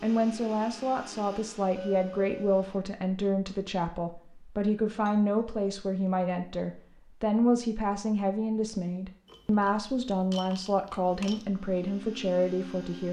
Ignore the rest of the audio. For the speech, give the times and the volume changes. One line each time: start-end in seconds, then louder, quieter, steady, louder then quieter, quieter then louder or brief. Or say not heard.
0.0-13.0 steady.